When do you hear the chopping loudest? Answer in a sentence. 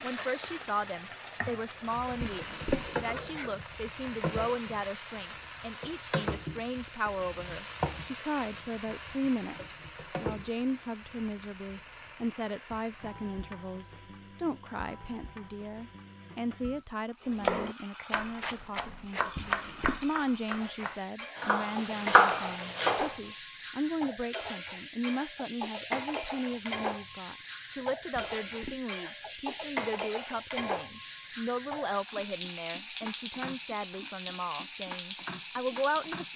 The loudest moment of the chopping is at 22 seconds.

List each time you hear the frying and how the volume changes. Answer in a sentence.
You can hear the frying from 0.0 to 36.3 s, getting quieter then louder.